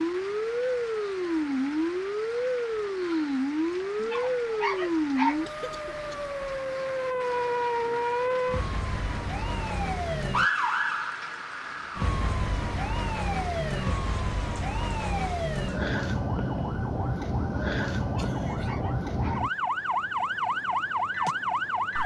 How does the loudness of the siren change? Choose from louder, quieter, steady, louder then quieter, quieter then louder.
steady.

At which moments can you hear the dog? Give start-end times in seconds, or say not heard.
4.0-5.4, 18.1-19.4.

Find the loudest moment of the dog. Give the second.
5 s.